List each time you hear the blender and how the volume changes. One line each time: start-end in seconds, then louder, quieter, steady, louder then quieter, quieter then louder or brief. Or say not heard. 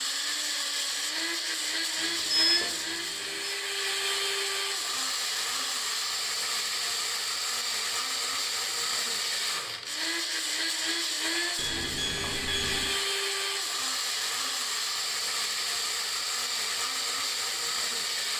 0.0-18.3 steady.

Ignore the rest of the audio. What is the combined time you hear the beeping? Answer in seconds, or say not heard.
3 s.